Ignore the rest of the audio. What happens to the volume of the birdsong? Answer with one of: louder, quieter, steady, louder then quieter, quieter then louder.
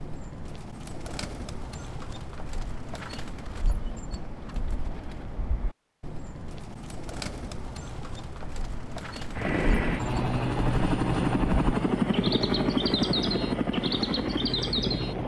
louder.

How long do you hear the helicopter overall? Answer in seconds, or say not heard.
6 s.